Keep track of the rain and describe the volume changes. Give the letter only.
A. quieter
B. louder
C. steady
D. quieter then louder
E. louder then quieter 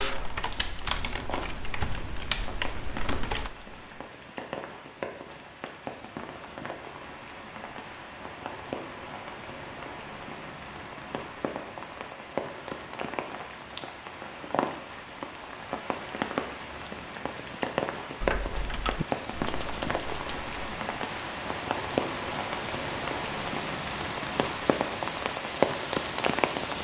B.